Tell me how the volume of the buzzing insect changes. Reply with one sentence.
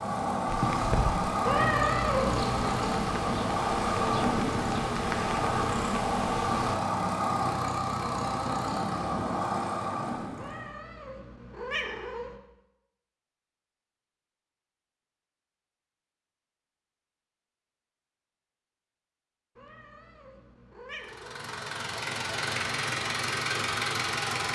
The volume of the buzzing insect stays about the same.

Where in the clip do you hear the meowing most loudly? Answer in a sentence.
The loudest moment of the meowing is at 2 seconds.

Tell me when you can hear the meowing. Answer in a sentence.
The meowing can be heard from 1.4 to 2.7 s, from 10.3 to 12.3 s and from 19.6 to 21.4 s.